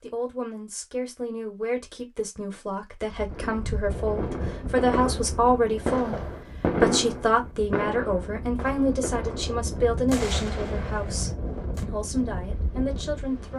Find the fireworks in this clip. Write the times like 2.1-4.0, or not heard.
3.2-11.8.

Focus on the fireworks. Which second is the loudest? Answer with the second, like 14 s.
7 s.